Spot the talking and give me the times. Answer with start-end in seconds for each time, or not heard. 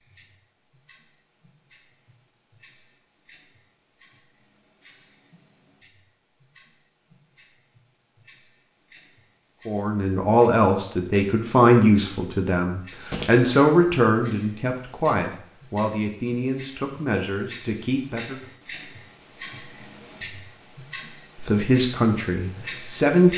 9.7-18.4, 21.4-23.3.